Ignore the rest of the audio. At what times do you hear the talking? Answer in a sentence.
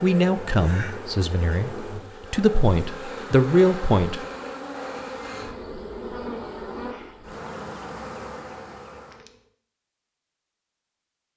The talking can be heard from 0.0 to 4.2 s.